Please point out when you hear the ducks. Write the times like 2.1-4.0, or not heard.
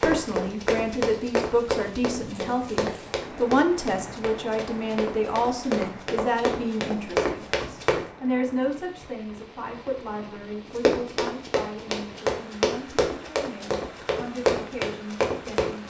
not heard.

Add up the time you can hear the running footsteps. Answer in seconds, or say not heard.
13 s.